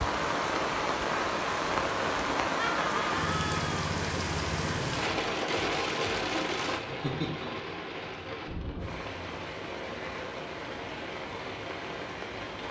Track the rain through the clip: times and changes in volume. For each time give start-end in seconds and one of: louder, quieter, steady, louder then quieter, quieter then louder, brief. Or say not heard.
0.0-12.6 quieter.